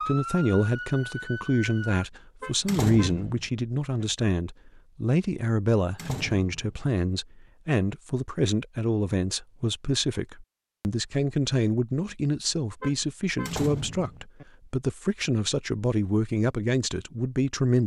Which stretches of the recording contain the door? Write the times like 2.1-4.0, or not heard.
2.6-3.5, 6.0-6.8, 13.4-14.2.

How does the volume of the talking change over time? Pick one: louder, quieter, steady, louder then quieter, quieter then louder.
steady.